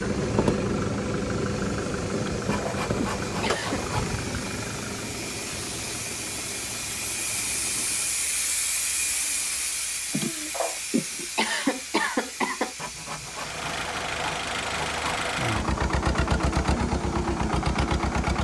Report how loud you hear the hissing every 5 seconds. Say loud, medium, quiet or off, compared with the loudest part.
medium, loud, medium, quiet.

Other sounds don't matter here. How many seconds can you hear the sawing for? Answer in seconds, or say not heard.
4 s.